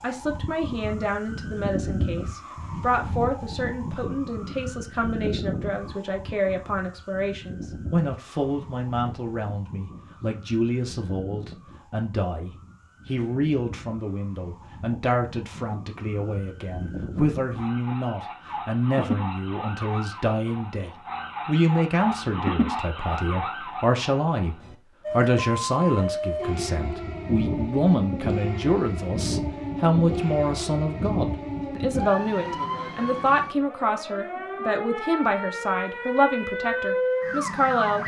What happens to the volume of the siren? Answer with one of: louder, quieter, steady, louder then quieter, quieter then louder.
quieter then louder.